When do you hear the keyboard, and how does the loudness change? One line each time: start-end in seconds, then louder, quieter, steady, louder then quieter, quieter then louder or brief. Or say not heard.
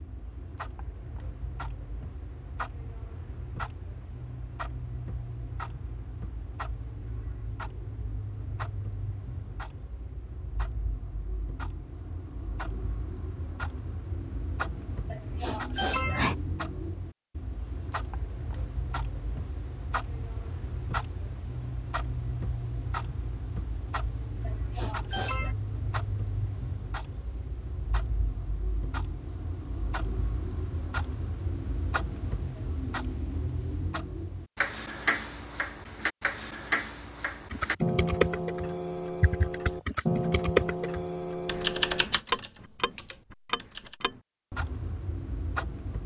37.5-44.0 quieter.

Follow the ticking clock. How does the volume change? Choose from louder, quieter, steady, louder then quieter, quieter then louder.
louder.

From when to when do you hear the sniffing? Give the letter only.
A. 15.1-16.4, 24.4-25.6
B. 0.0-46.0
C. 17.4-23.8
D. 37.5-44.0
A.